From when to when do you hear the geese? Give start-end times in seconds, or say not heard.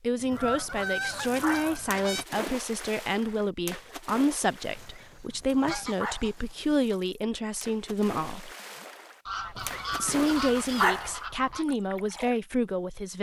0.3-2.2, 4.8-7.0, 9.2-11.7.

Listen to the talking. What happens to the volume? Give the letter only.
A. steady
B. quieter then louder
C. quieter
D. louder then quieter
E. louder
A.